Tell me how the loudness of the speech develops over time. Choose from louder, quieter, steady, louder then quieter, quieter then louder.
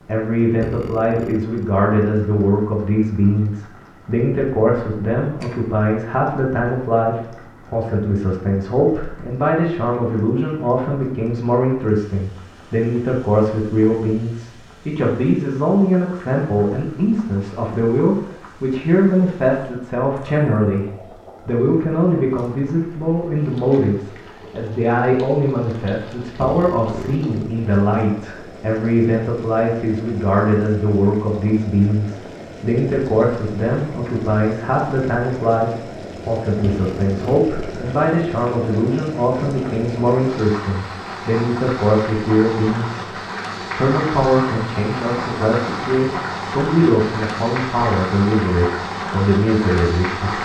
steady.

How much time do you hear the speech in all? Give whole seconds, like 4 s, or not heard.
50 s.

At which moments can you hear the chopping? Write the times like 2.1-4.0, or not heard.
not heard.